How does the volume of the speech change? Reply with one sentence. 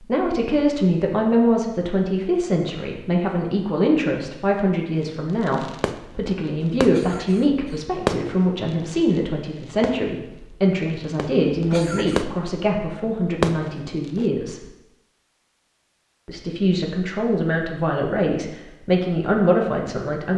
The volume of the speech stays about the same.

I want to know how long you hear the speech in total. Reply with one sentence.
You can hear the speech for 19 seconds altogether.